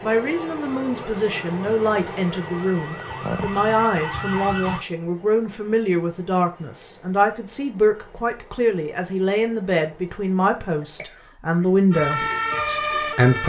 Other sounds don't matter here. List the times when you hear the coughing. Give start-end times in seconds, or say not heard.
2.8-3.6, 10.8-11.7.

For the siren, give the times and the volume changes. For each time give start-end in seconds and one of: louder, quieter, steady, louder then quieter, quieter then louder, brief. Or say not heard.
0.2-4.8 louder
11.9-13.4 brief.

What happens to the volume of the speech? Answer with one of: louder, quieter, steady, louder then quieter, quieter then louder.
steady.